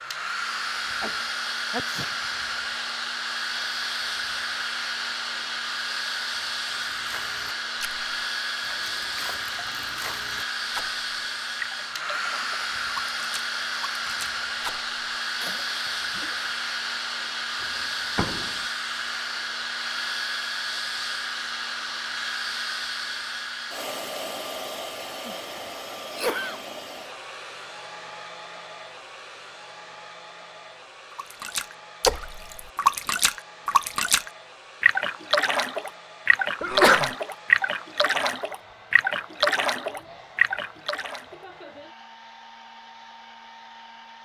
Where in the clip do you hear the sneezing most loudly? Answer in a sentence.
The volume of the sneezing peaks at 37 seconds.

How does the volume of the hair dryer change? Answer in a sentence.
The volume of the hair dryer goes down.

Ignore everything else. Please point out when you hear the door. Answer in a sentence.
The door can be heard from 17.6 to 18.6 s.